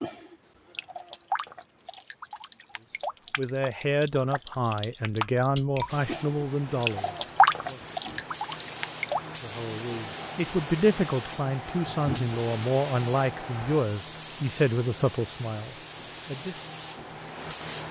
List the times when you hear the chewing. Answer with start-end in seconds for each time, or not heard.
not heard.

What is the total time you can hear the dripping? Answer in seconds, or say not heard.
9 s.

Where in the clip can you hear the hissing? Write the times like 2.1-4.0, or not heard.
5.8-17.8.